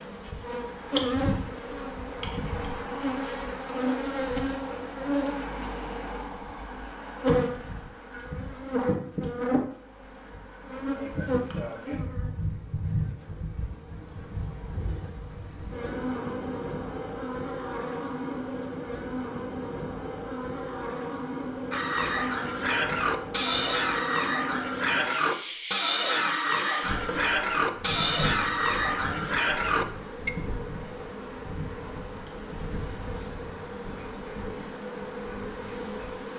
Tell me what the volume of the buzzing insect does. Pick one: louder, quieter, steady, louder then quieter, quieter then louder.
quieter.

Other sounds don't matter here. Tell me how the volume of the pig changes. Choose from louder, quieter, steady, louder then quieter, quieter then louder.
steady.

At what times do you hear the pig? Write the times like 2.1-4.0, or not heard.
21.7-30.3.